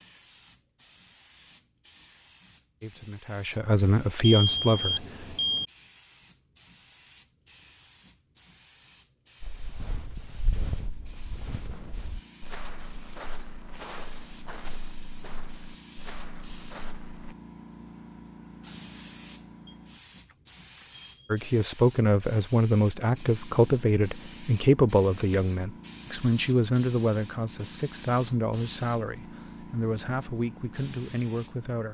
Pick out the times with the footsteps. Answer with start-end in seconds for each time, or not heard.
9.4-17.4.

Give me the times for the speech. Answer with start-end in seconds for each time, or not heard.
2.8-5.3, 21.3-31.8.